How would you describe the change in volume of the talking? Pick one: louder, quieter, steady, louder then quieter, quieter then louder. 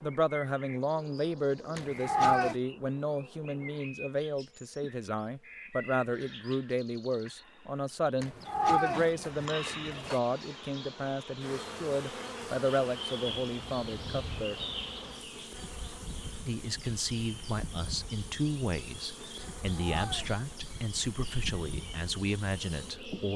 steady.